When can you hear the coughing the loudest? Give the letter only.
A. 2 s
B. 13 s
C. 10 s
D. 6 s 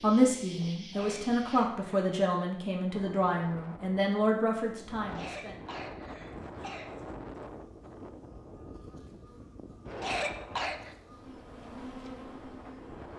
C.